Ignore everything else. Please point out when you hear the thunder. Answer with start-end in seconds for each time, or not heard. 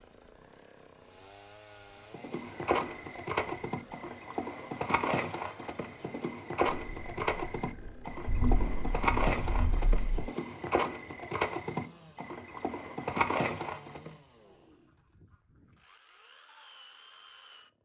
6.7-10.3.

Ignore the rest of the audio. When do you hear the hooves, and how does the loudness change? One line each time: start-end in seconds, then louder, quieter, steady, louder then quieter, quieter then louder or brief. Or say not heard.
2.1-14.1 steady.